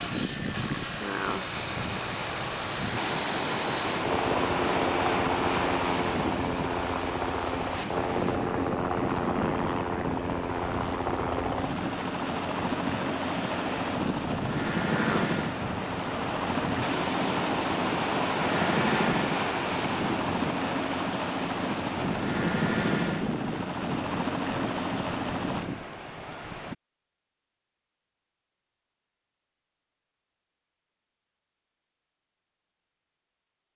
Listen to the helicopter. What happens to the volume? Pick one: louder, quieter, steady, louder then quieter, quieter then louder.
steady.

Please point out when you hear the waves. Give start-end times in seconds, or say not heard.
0.0-26.8.